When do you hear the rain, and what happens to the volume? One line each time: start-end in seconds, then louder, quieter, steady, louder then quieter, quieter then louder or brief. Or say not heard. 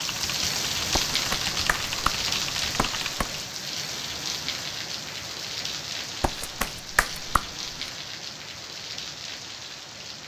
0.0-10.2 quieter.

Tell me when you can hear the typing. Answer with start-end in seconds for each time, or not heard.
0.0-3.1.